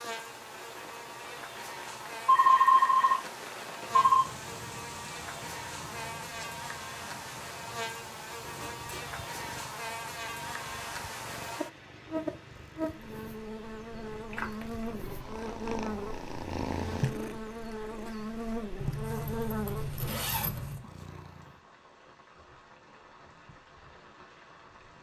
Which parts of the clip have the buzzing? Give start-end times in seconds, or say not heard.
0.0-20.0.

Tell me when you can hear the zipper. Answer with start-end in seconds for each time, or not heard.
8.4-9.2, 18.8-20.8.